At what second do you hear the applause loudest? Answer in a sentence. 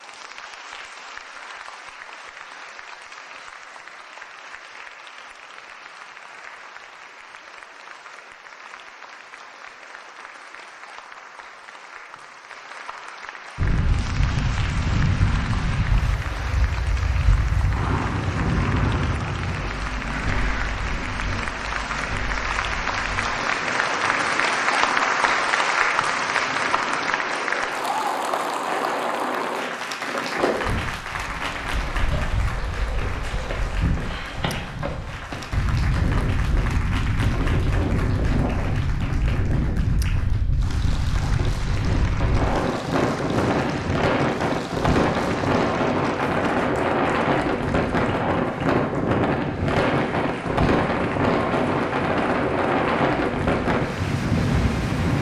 The volume of the applause peaks at 25 seconds.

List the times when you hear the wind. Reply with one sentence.
You can hear the wind from 13.6 to 55.1 s.